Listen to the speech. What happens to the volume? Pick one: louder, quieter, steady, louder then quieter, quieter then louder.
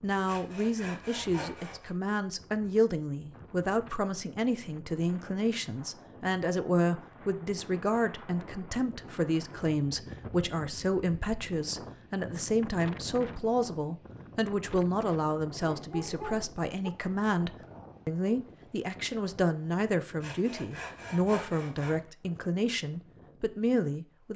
steady.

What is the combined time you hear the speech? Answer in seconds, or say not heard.
24 s.